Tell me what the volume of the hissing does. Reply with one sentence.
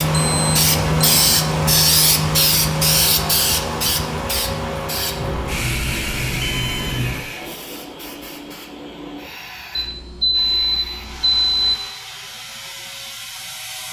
The loudness of the hissing goes down.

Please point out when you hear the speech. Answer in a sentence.
You can't hear the speech here.